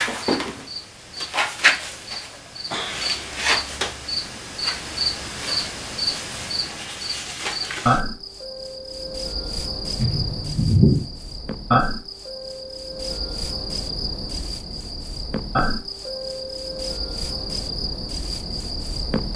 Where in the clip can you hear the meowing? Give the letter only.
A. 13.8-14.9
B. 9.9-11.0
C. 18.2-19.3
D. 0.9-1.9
B.